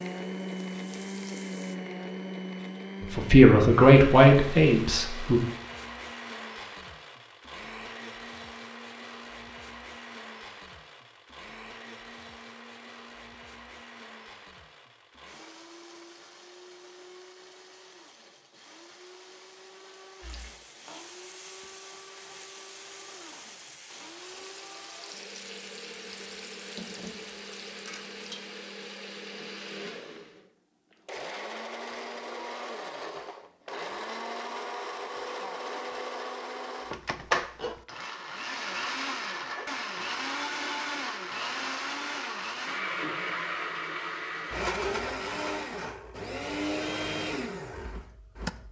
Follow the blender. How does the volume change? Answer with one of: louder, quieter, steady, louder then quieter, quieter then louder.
quieter then louder.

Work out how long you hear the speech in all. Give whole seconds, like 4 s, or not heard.
2 s.